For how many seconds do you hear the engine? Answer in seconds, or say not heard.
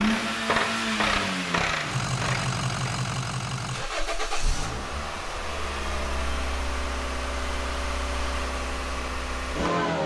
10 s.